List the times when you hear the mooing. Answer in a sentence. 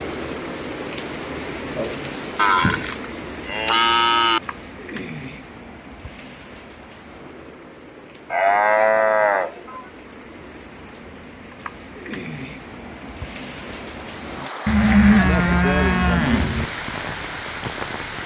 You can hear the mooing from 2.4 to 4.4 s, from 8.3 to 9.8 s and from 14.7 to 16.6 s.